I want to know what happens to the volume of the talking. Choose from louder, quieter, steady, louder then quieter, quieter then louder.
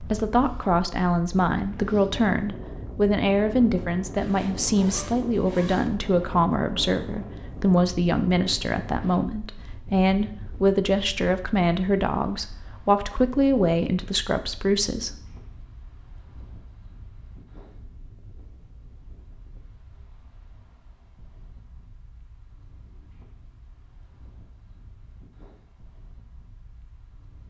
steady.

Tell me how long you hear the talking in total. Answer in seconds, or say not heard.
15 s.